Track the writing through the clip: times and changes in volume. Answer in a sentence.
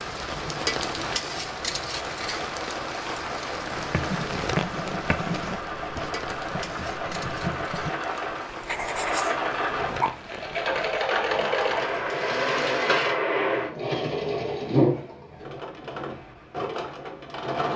The writing can be heard from 3.7 to 7.9 s, getting quieter then louder; and briefly from 8.5 to 10.1 s.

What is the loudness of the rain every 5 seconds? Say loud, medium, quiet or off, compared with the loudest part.
loud, medium, medium, off.